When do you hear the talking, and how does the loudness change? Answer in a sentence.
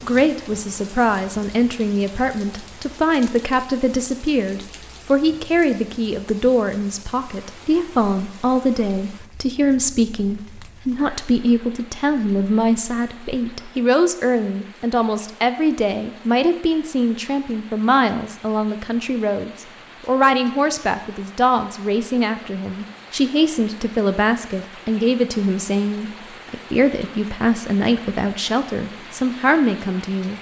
You can hear the talking from 0.0 to 30.3 s, at a steady volume.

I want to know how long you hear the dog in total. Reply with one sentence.
The dog can't be heard in this clip.